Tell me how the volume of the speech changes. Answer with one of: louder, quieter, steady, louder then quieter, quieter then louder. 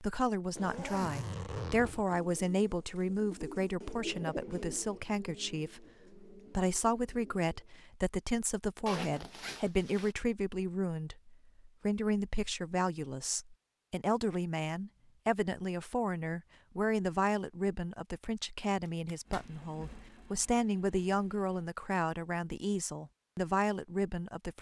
steady.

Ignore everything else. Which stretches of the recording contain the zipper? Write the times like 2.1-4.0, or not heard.
0.6-2.2, 8.8-10.2, 18.9-19.4.